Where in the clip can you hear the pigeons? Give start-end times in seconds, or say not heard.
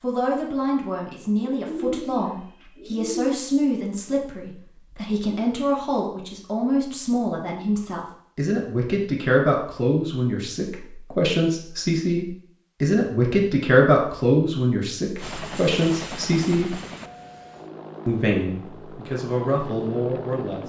1.4-3.3.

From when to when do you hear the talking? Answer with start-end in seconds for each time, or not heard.
0.0-16.8, 18.1-20.6.